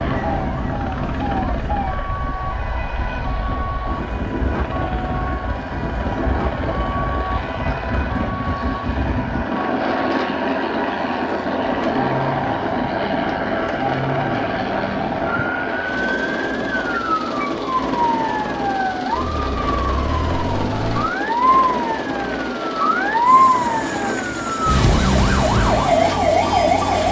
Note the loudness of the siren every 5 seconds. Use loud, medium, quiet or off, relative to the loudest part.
quiet, quiet, medium, medium, loud, loud.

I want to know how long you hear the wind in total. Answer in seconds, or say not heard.
27 s.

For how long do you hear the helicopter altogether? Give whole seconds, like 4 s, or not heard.
27 s.